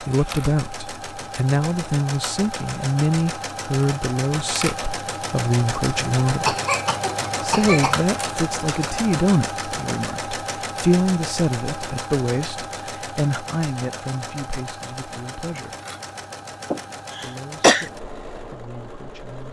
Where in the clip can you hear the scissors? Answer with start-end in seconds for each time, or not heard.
not heard.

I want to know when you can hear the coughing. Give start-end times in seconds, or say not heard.
6.0-8.0, 16.7-17.9.